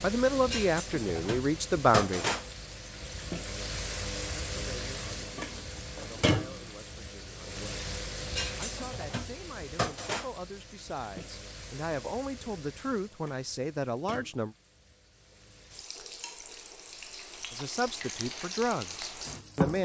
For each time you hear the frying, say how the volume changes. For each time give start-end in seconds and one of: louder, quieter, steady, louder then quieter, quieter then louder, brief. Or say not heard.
0.0-19.8 quieter then louder.